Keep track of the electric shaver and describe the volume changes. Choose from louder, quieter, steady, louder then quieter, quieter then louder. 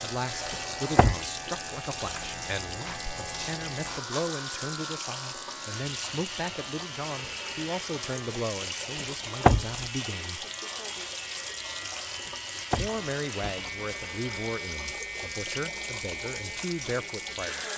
steady.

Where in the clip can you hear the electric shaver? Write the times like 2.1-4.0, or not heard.
0.0-17.7.